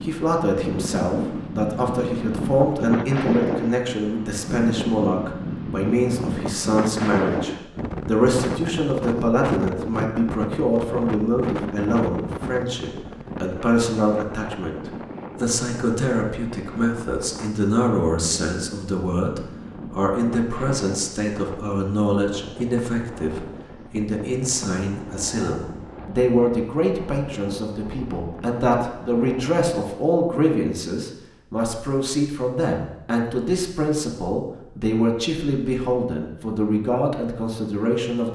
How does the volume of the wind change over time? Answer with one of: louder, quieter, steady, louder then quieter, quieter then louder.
quieter.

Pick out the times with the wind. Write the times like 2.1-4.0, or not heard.
0.0-29.7.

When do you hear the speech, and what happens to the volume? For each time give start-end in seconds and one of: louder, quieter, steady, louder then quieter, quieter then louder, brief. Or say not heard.
0.0-38.3 steady.